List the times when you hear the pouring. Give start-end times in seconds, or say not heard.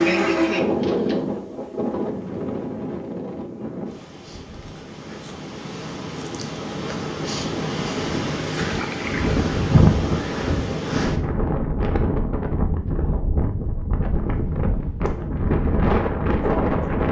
8.6-9.4.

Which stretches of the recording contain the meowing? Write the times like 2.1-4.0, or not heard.
not heard.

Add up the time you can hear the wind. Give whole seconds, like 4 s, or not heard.
17 s.